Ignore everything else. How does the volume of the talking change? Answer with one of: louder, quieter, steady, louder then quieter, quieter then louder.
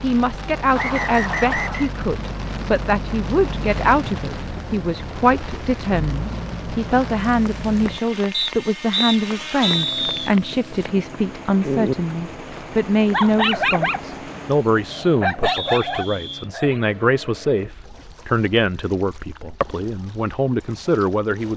steady.